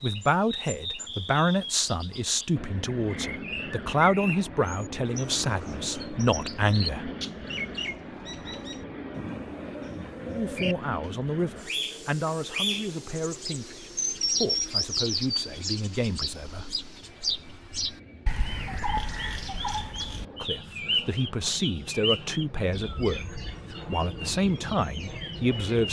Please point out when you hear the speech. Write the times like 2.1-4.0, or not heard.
0.0-7.1, 10.3-16.8, 20.4-25.8.